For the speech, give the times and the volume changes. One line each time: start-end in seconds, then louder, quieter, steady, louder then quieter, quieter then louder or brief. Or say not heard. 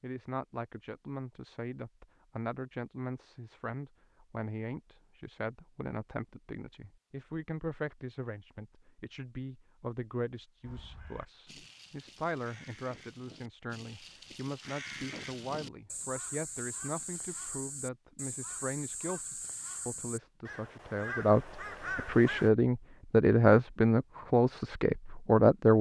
0.0-25.7 louder.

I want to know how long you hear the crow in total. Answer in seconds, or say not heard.
12 s.